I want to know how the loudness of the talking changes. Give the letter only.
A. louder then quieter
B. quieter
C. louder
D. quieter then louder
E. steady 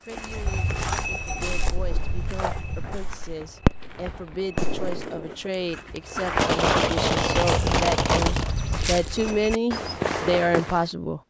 C.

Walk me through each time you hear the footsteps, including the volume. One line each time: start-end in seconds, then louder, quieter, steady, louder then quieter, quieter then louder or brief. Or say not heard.
0.1-10.8 quieter then louder.